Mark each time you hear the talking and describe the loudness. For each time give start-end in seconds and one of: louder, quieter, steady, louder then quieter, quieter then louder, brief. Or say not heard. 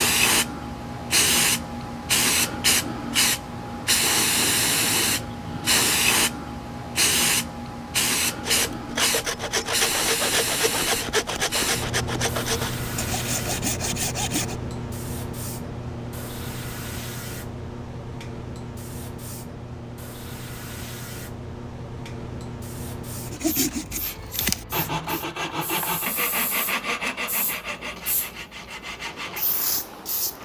not heard.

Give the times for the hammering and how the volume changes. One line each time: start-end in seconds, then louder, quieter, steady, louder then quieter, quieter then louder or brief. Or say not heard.
not heard.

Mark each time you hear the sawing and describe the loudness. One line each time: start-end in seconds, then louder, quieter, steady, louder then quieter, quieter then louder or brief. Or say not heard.
8.4-14.6 steady
23.3-29.4 quieter.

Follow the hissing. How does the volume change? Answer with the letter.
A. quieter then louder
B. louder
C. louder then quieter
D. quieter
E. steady
D.